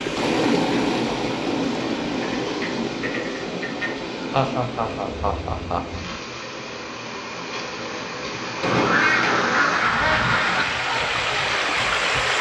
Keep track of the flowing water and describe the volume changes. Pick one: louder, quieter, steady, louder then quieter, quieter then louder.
quieter then louder.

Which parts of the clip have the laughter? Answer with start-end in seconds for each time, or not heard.
4.3-6.2.